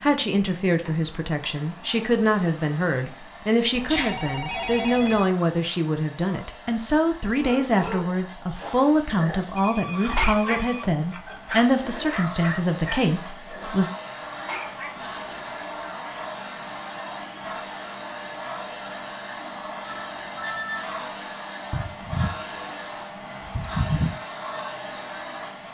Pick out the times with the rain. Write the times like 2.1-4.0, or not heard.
not heard.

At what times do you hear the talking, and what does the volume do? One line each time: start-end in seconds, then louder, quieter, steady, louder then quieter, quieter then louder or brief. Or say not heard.
0.0-13.8 steady.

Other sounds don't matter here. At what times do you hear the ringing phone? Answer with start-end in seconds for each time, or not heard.
3.7-5.3, 9.6-11.1, 19.9-20.9.